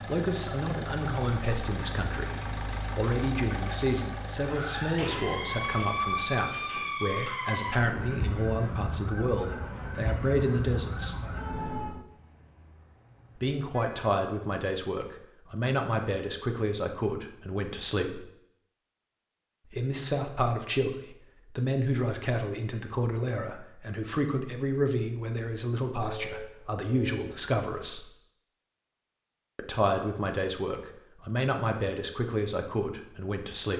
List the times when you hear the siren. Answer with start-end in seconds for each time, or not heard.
4.3-12.1.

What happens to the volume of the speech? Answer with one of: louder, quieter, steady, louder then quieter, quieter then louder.
steady.